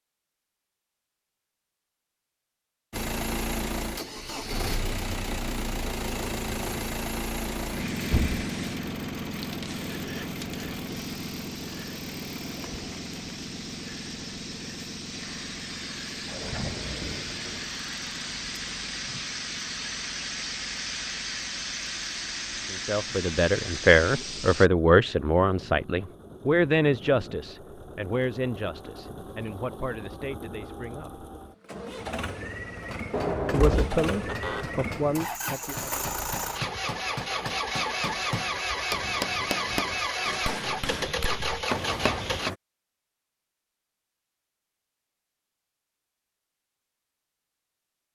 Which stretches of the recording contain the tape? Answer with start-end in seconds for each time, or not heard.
not heard.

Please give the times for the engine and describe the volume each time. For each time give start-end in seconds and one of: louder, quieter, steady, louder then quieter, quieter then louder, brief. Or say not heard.
2.9-42.5 quieter then louder.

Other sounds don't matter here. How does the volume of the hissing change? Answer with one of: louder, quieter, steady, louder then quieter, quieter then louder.
louder.